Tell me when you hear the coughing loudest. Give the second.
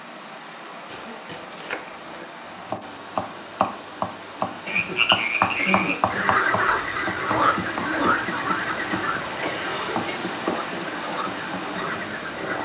6 s.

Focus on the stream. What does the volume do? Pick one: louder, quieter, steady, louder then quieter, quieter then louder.
louder.